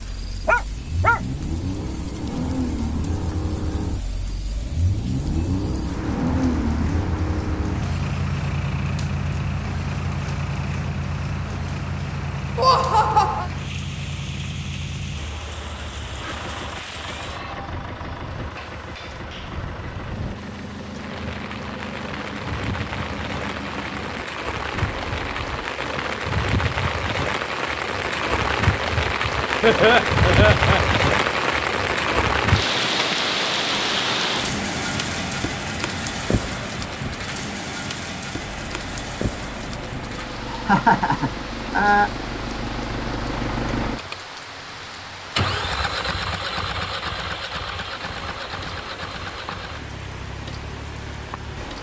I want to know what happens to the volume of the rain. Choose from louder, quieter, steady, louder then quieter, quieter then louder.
louder then quieter.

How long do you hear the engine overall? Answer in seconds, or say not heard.
39 s.